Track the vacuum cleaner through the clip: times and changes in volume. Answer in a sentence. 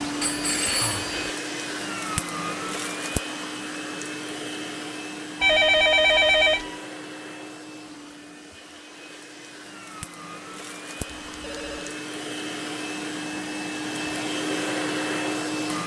The vacuum cleaner can be heard from 0.0 to 15.8 s, getting quieter then louder.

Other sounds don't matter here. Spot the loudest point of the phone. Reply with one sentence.
The loudest moment of the phone is at 6 seconds.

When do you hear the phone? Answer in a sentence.
You can hear the phone from 0.2 to 1.3 s, from 5.4 to 6.8 s and from 11.1 to 12.0 s.